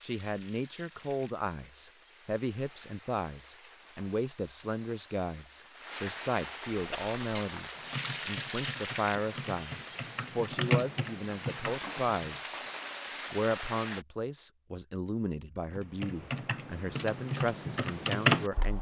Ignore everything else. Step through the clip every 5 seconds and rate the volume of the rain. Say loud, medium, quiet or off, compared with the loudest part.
quiet, loud, loud, off.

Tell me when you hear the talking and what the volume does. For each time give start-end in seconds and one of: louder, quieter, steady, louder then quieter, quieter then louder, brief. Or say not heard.
0.0-12.6 steady
13.3-18.7 steady.